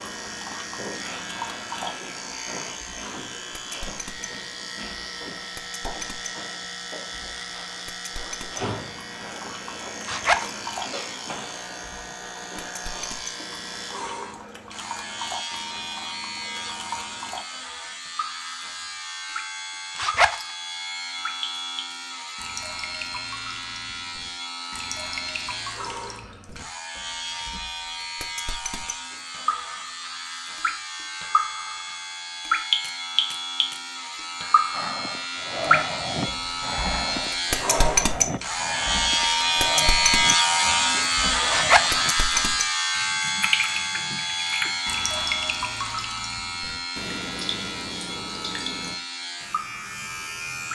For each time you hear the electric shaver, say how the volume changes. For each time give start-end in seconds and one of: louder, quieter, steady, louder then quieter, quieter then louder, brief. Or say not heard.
0.0-50.7 louder.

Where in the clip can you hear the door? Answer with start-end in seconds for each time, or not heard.
not heard.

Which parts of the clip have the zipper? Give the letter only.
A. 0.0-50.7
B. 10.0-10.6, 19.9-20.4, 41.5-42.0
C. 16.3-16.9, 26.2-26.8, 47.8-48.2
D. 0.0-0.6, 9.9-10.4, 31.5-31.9
B.